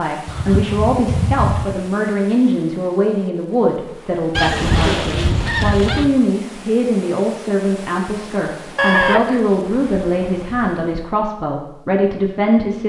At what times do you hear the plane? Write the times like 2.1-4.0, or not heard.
not heard.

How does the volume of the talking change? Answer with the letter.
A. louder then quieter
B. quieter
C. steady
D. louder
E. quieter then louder
C.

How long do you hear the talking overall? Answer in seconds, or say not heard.
13 s.